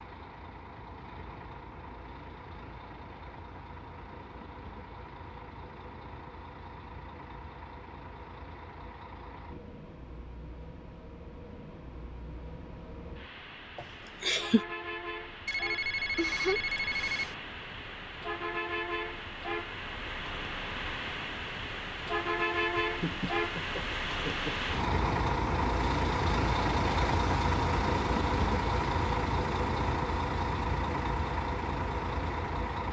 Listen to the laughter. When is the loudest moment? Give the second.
14 s.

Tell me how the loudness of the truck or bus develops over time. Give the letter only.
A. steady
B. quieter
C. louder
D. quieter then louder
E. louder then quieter
C.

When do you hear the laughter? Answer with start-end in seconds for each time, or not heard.
13.8-14.7, 22.8-24.7.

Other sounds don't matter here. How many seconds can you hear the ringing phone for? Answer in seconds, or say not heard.
2 s.